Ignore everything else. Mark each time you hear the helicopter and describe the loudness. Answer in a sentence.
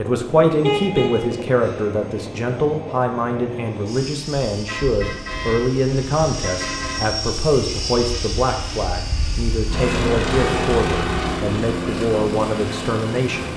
You can hear the helicopter from 0.0 to 13.5 s, getting louder.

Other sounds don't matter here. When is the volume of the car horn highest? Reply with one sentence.
The loudest moment of the car horn is at 1 second.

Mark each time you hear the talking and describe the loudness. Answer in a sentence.
The talking can be heard from 0.0 to 13.5 s, at a steady volume.